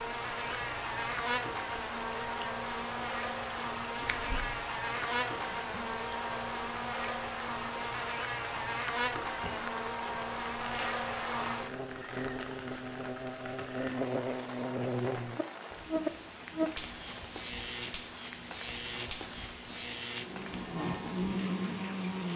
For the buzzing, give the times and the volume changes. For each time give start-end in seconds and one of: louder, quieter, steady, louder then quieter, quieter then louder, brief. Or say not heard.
0.0-22.3 steady.